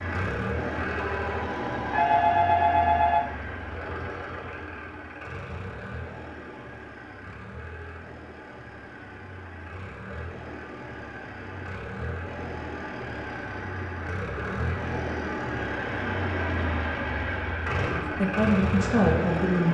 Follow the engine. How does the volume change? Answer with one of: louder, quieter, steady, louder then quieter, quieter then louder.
quieter then louder.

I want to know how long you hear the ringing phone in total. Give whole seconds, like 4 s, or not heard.
2 s.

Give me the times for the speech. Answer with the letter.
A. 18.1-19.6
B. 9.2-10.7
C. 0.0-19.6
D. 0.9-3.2
A.